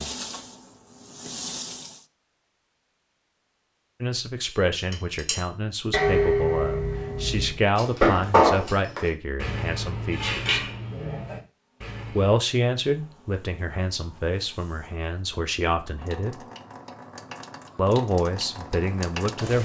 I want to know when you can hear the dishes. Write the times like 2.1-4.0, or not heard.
4.5-12.4.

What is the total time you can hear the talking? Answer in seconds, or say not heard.
13 s.